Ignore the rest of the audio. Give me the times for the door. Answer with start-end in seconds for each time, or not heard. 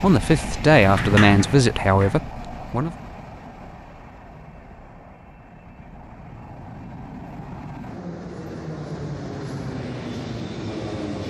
0.8-2.2.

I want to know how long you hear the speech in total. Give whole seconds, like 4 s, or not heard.
3 s.